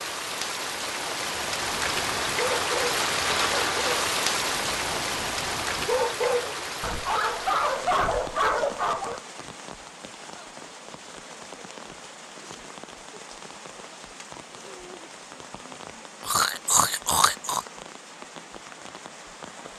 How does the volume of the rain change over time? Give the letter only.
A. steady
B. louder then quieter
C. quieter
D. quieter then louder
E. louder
C.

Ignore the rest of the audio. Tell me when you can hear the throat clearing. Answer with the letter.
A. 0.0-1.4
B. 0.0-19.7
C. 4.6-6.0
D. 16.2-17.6
D.